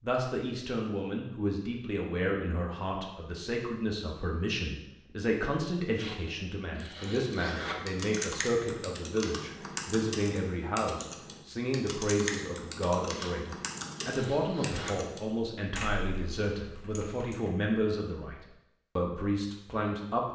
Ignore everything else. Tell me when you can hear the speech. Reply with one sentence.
You can hear the speech from 0.0 to 20.3 s.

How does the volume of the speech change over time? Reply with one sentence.
The loudness of the speech stays about the same.